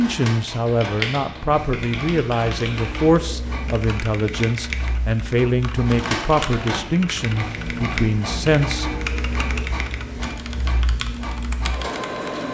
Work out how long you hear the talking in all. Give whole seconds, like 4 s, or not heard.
9 s.